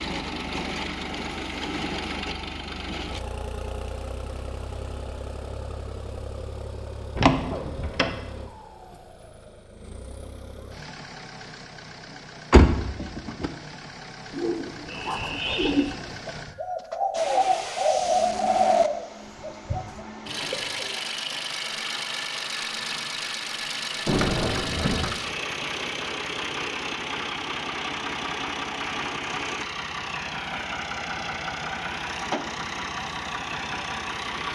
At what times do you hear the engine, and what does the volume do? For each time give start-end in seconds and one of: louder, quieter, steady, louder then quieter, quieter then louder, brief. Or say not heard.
0.0-34.5 quieter then louder.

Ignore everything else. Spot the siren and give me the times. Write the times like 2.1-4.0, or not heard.
not heard.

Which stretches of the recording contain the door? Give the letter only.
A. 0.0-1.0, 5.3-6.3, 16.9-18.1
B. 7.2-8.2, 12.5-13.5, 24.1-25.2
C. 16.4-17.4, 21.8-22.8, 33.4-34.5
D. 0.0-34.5
B.